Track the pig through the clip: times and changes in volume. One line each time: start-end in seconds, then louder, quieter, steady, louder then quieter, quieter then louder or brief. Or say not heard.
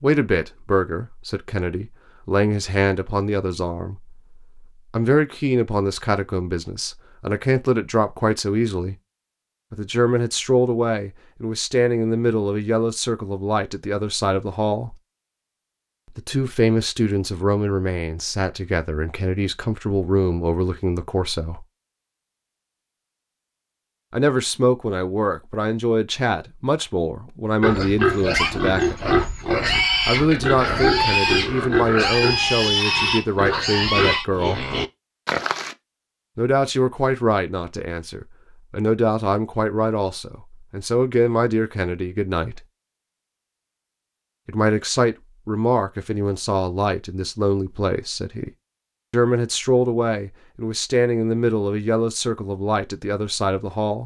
27.6-35.8 steady.